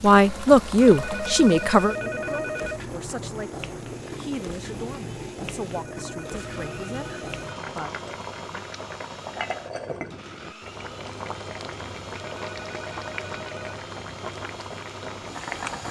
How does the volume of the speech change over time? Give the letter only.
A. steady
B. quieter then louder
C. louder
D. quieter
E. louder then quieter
D.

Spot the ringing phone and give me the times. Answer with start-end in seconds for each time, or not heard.
0.8-2.9, 5.8-7.7, 12.3-13.8.